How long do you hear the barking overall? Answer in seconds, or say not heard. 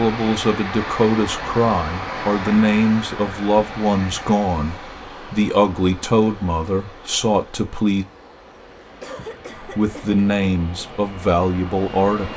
not heard.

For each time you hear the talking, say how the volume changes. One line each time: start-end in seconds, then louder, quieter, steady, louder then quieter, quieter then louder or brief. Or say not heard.
0.0-8.1 steady
9.6-12.3 brief.